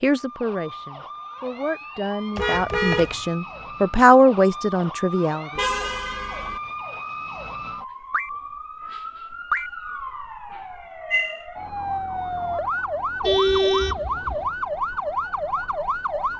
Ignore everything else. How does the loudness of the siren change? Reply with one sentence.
The loudness of the siren goes up.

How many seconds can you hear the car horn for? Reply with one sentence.
The car horn can be heard for 3 seconds in total.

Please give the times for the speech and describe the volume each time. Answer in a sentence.
You can hear the speech from 0.0 to 5.5 s, getting louder.